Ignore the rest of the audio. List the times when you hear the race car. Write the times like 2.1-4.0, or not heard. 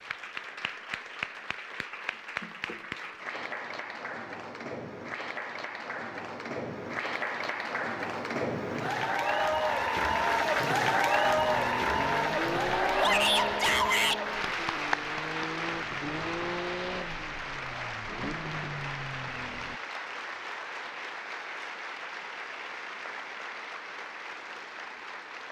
11.2-19.8.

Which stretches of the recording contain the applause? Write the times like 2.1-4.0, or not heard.
0.0-25.4.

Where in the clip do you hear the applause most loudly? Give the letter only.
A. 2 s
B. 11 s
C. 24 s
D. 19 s
B.